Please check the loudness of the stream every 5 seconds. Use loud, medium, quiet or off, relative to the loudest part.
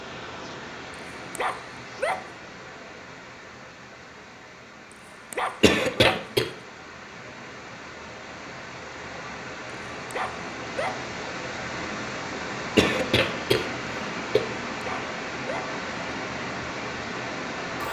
medium, medium, loud, loud.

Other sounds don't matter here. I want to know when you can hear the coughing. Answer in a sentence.
You can hear the coughing from 5.6 to 6.5 s and from 12.8 to 14.4 s.